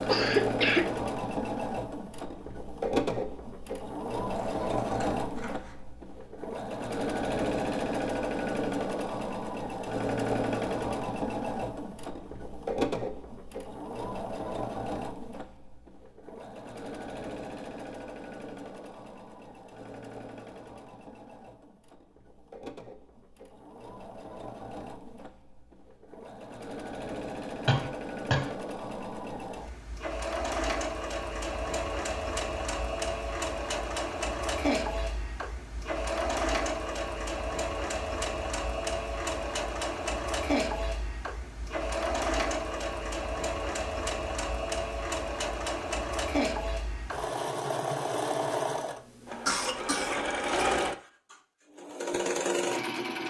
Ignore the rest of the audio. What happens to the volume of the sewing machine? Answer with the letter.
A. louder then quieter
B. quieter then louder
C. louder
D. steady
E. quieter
B.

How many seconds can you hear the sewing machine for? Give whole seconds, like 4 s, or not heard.
53 s.